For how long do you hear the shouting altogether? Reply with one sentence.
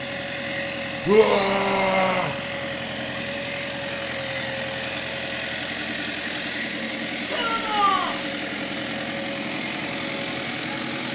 The shouting can be heard for 2 seconds in total.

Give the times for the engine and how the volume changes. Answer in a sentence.
The engine can be heard from 0.0 to 11.1 s, at a steady volume.